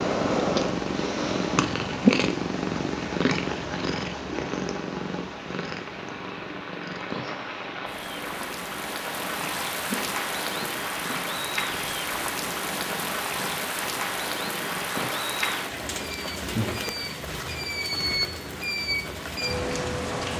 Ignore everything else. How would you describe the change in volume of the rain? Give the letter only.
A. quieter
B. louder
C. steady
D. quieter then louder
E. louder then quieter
B.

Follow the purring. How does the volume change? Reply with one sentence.
The loudness of the purring goes down.